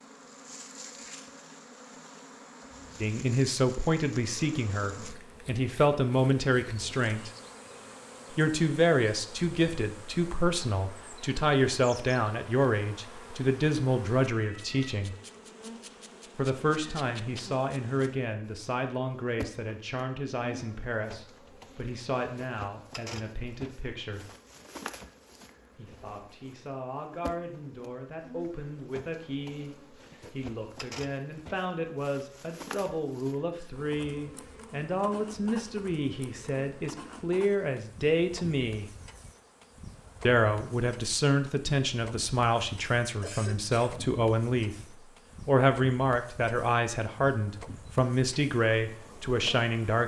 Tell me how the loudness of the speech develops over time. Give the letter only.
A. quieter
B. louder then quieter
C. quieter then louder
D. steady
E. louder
C.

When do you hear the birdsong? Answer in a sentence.
You can't hear the birdsong here.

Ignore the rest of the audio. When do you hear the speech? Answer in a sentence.
The speech can be heard from 3.0 to 7.3 s, from 8.3 to 15.2 s, from 16.4 to 24.3 s, from 25.8 to 38.9 s, from 40.2 to 44.8 s and from 45.5 to 50.0 s.